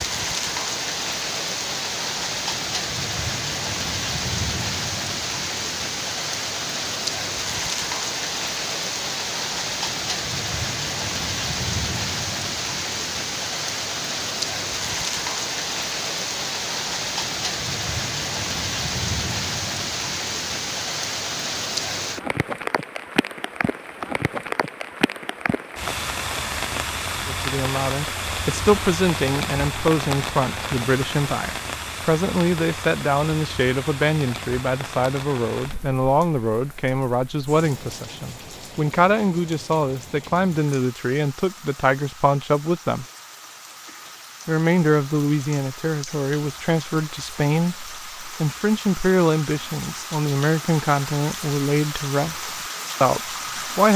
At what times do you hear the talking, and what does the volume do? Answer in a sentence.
The talking can be heard from 27.2 to 43.0 s, at a steady volume; and from 44.5 to 53.9 s, at a steady volume.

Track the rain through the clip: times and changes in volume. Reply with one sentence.
The rain can be heard from 0.0 to 53.9 s, getting quieter.